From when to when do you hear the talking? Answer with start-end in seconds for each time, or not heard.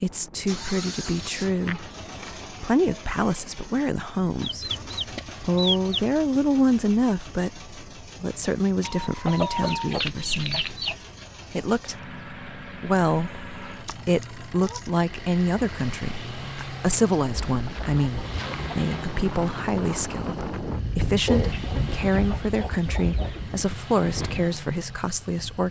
0.0-1.9, 2.5-4.7, 5.4-10.7, 11.5-25.6.